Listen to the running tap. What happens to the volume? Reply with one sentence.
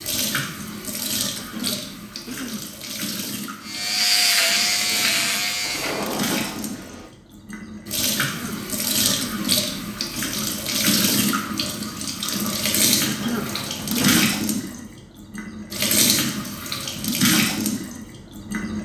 The volume of the running tap goes up.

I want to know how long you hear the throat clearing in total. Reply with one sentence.
The throat clearing can be heard for 4 seconds in total.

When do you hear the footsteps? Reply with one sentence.
You can't hear the footsteps here.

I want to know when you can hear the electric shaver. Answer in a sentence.
The electric shaver can be heard from 3.6 to 6.2 s.